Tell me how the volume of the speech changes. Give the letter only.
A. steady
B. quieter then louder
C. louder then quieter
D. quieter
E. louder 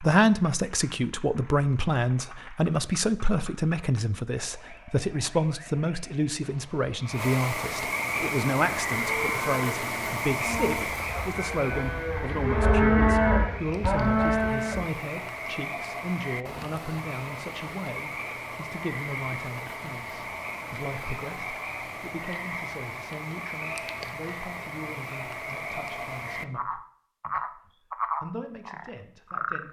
D.